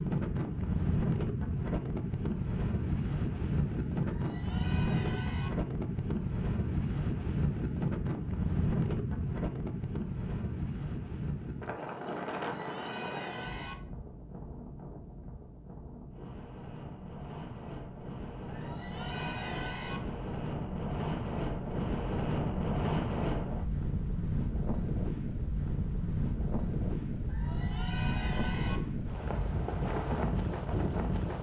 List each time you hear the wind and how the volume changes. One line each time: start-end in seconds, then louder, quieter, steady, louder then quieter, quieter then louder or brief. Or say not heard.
0.0-31.3 quieter then louder.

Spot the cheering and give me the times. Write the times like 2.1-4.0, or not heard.
4.0-5.5, 12.4-13.8, 18.5-20.0, 27.2-28.8.